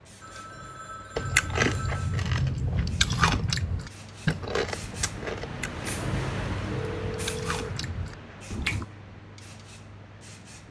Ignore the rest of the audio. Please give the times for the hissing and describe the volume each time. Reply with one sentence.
You can hear the hissing from 0.0 to 10.6 s, getting louder then quieter.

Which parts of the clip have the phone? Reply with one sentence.
You can hear the phone from 0.2 to 2.2 s and from 6.7 to 7.7 s.